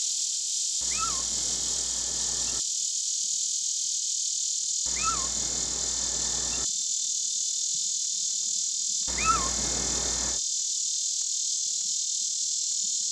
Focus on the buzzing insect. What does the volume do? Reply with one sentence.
The loudness of the buzzing insect stays about the same.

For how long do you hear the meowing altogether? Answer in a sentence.
The meowing can be heard for 5 seconds in total.